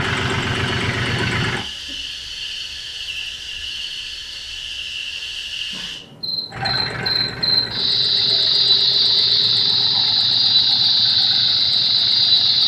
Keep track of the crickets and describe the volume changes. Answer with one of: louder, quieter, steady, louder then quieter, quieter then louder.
louder.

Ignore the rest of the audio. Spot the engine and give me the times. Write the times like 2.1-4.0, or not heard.
0.0-1.6, 6.5-12.6.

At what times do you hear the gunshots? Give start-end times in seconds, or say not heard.
not heard.